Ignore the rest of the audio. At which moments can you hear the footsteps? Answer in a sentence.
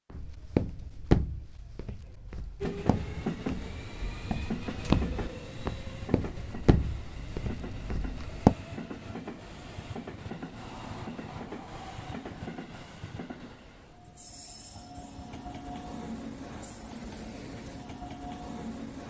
You can hear the footsteps from 0.1 to 8.6 s.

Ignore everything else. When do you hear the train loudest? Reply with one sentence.
The volume of the train peaks at 3 seconds.